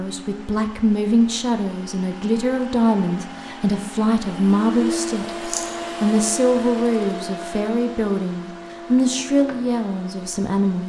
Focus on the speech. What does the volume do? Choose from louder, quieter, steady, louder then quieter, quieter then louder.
steady.